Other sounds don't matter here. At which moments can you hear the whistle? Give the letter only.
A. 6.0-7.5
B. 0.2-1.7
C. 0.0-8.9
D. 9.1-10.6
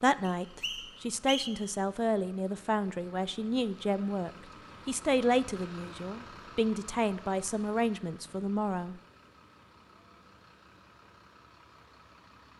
B.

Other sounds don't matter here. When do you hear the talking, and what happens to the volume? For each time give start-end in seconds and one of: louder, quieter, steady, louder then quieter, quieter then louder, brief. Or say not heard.
0.0-8.9 steady.